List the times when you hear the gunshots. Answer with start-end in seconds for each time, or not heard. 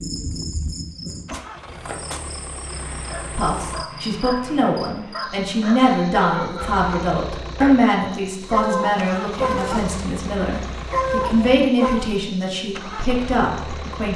1.3-2.4.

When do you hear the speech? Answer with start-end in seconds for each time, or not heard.
3.4-14.1.